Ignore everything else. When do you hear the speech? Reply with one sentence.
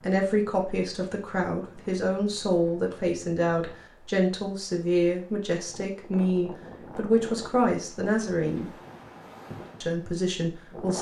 You can hear the speech from 0.0 to 8.8 s and from 9.8 to 10.9 s.